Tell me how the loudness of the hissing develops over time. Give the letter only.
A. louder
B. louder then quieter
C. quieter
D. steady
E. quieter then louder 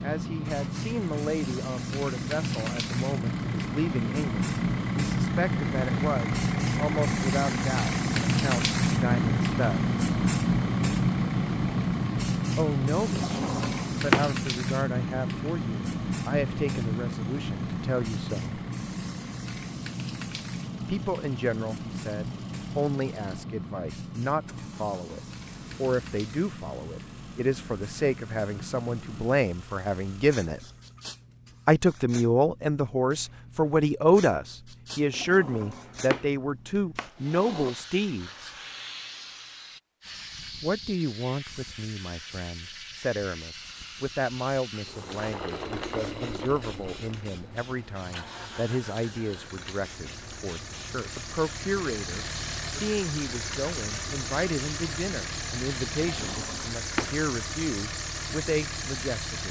C.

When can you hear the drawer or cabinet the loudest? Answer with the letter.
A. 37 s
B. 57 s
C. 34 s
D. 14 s
D.